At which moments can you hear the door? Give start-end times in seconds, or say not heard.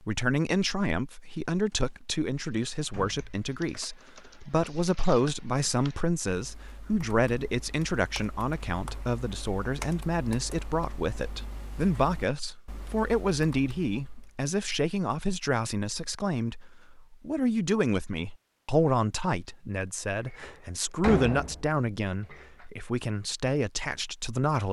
2.9-3.4, 20.2-22.6.